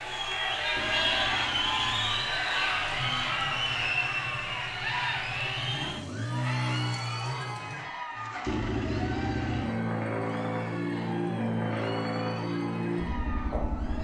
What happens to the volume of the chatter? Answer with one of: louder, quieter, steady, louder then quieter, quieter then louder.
quieter.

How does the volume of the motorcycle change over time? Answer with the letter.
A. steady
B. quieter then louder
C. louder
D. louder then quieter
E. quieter
C.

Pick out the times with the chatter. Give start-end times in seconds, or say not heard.
0.0-14.0.